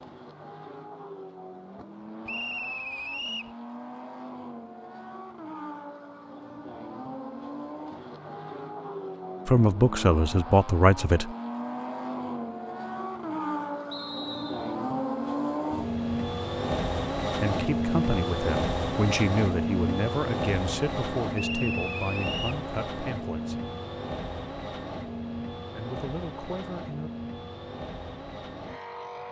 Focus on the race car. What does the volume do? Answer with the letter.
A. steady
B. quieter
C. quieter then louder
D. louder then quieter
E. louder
D.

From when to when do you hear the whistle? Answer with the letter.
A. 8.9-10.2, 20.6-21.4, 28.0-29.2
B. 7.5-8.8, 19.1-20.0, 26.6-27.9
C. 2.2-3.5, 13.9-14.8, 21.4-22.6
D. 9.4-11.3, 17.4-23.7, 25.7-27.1
C.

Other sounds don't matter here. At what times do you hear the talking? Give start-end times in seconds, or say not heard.
9.4-11.3, 17.4-23.7, 25.7-27.1.